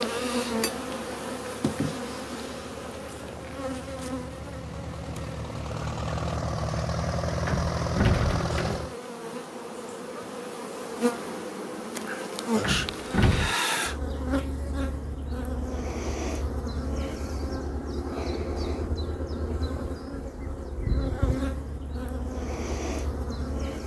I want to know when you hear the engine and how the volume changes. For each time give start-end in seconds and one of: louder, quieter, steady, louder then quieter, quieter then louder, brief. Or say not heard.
0.2-8.9 louder.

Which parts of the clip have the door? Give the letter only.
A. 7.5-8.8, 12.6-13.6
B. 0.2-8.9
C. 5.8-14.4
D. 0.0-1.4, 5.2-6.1
A.